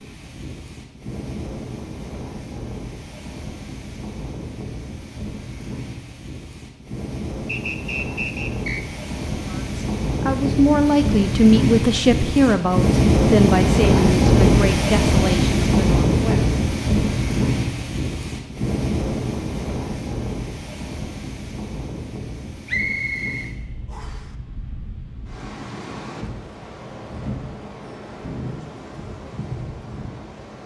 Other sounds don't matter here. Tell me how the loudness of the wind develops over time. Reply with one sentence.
The loudness of the wind goes up, then down.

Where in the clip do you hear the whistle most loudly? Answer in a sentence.
The loudest moment of the whistle is at 23 seconds.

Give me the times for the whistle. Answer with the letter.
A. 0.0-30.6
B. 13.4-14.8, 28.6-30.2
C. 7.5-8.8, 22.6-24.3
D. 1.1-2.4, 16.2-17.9
C.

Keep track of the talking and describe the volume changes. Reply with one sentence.
The loudness of the talking goes down.